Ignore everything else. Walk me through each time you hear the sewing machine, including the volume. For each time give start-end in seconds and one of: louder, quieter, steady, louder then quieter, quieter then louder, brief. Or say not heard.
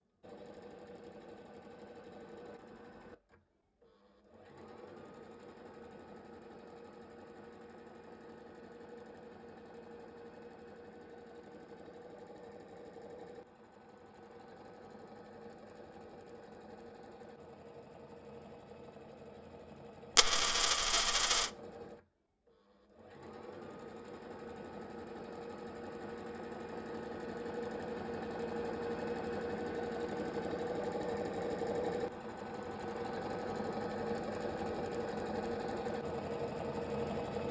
0.1-37.4 louder.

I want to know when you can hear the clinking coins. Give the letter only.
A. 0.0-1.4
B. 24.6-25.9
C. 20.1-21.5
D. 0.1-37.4
C.